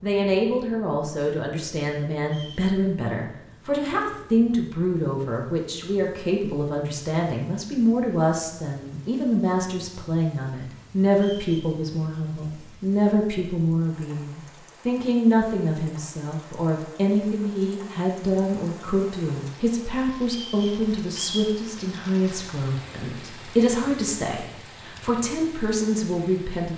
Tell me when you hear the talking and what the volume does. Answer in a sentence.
The talking can be heard from 0.0 to 26.7 s, at a steady volume.